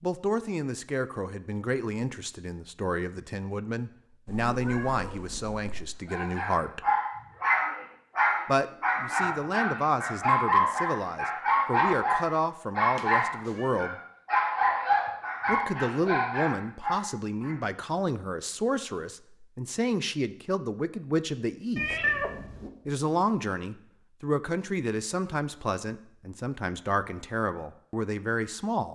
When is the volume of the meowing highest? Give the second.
22 s.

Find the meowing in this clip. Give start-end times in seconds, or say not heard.
4.2-6.0, 12.9-13.7, 21.8-22.7.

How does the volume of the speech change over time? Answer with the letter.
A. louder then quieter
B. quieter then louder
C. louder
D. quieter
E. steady
E.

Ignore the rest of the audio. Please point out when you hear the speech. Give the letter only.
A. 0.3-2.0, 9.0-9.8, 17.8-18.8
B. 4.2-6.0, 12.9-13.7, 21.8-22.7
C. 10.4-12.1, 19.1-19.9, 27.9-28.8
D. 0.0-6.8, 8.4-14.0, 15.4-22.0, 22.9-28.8
D.